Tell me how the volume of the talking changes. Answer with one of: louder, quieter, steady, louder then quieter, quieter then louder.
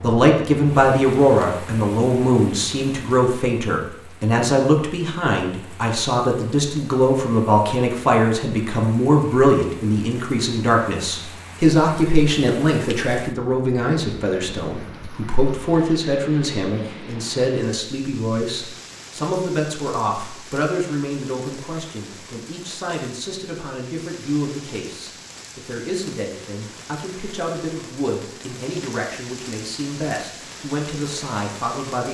quieter.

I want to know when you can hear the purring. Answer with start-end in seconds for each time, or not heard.
not heard.